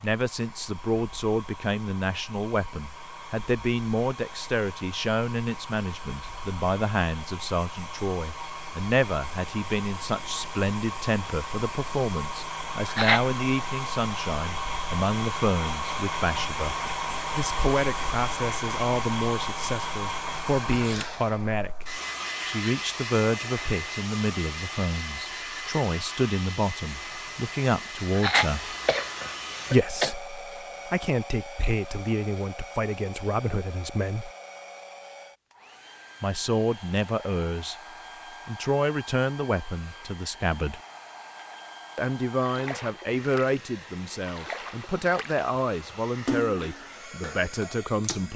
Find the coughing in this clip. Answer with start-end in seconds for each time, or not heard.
12.8-13.3, 28.1-30.1.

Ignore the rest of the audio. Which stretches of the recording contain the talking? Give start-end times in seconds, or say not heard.
0.0-16.8, 17.4-28.8, 29.7-34.3, 36.2-37.8, 38.5-40.8, 42.0-48.3.